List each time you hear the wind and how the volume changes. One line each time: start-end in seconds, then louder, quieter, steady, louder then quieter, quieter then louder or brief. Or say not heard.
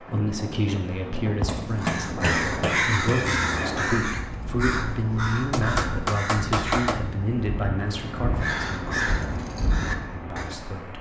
0.0-10.9 steady.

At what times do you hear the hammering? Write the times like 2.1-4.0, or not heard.
1.4-2.9, 5.5-7.0.